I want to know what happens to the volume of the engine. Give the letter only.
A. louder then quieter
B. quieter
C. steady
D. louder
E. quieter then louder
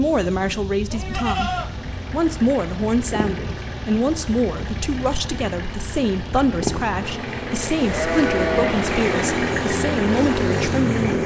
D.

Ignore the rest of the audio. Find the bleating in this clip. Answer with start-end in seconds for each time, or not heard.
0.9-1.8, 7.7-8.8.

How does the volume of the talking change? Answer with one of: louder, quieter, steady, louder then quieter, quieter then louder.
steady.